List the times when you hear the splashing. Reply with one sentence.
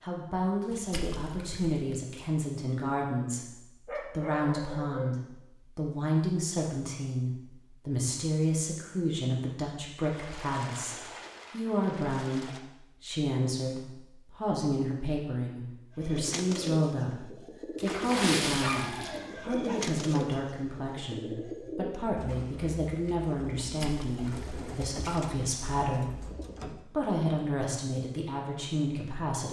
The splashing can be heard from 0.7 to 2.3 s, from 10.0 to 12.6 s, from 17.8 to 19.2 s and from 23.6 to 25.3 s.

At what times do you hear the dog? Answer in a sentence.
The dog can be heard from 3.9 to 5.2 s and from 18.4 to 19.8 s.